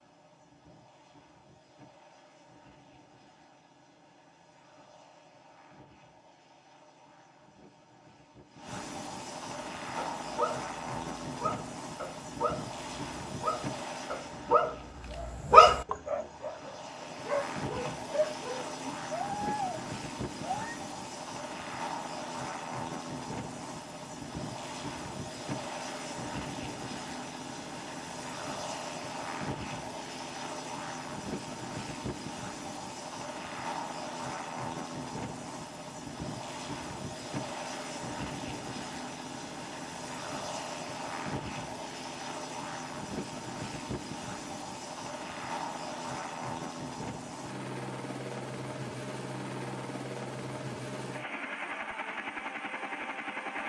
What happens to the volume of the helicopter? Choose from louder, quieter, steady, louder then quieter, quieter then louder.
louder.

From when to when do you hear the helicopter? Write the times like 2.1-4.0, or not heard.
0.0-53.6.